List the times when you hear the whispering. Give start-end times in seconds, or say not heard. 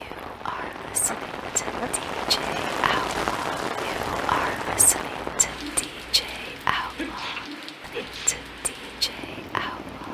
0.0-10.0.